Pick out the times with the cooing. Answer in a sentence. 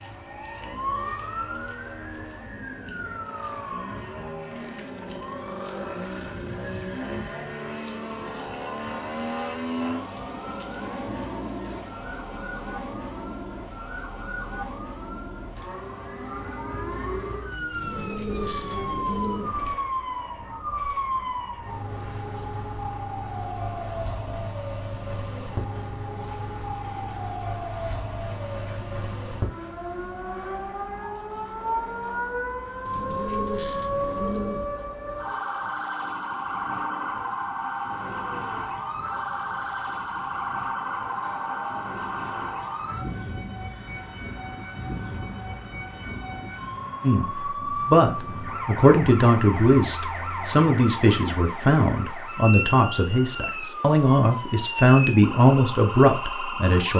You can hear the cooing from 17.7 to 19.8 s and from 32.9 to 34.8 s.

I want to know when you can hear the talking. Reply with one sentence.
You can hear the talking from 47.0 to 56.9 s.